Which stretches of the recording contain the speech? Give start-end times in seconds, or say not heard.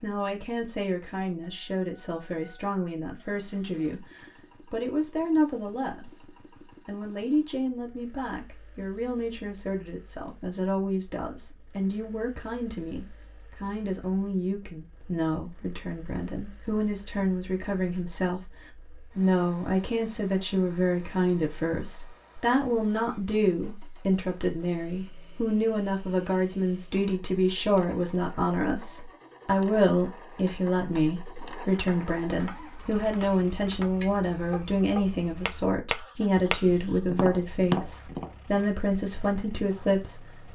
0.0-40.2.